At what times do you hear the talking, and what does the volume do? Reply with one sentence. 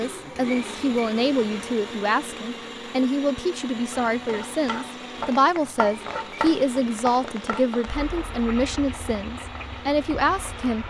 You can hear the talking from 0.0 to 10.8 s, at a steady volume.